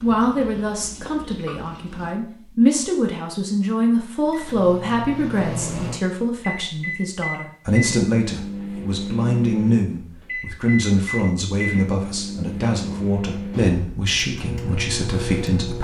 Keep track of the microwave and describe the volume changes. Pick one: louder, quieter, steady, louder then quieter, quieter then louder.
steady.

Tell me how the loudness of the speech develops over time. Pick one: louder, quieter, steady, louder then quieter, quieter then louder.
steady.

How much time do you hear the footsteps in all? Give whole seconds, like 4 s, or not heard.
not heard.